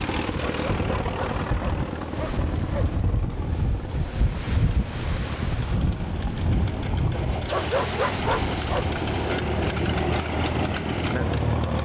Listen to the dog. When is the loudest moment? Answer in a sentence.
The volume of the dog peaks at 8 seconds.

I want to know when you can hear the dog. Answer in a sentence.
The dog can be heard from 0.2 to 2.9 s and from 7.1 to 8.9 s.